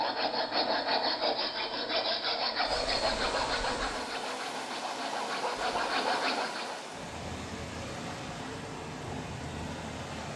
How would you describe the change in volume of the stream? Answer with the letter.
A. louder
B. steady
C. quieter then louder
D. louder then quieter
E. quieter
A.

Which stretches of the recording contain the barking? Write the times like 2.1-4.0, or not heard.
not heard.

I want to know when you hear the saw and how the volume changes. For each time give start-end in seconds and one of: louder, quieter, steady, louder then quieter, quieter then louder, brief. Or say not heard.
0.0-6.8 quieter then louder.